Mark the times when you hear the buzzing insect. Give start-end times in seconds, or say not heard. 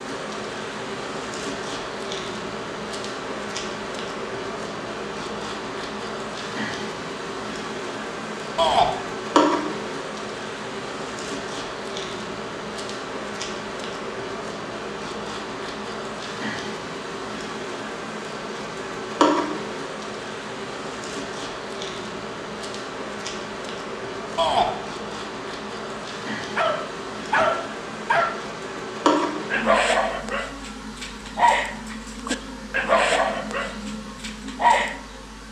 0.0-35.4.